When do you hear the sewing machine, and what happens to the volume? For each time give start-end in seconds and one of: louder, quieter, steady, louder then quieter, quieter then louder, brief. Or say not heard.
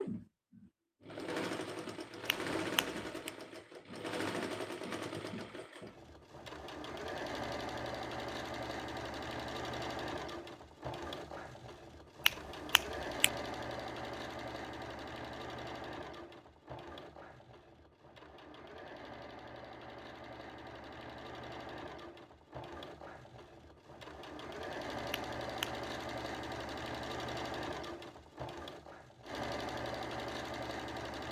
0.0-31.2 quieter then louder.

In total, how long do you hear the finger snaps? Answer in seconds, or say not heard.
3 s.